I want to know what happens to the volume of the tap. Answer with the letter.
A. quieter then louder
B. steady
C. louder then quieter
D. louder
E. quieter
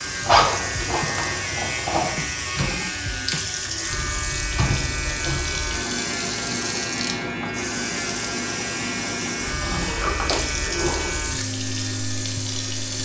B.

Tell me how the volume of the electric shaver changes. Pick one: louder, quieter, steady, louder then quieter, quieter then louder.
steady.